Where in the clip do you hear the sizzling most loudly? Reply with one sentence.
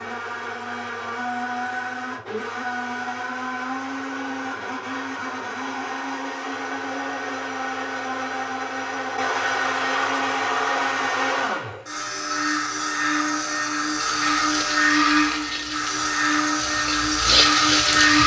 The volume of the sizzling peaks at 18 seconds.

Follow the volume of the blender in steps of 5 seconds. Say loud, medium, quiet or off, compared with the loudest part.
medium, medium, loud, loud.